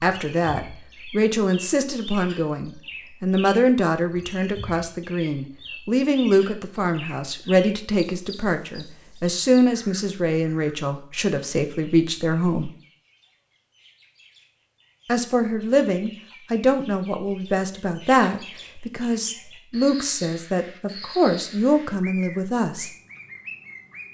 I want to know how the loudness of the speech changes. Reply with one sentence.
The volume of the speech stays about the same.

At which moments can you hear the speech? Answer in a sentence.
The speech can be heard from 0.0 to 12.7 s and from 15.1 to 22.9 s.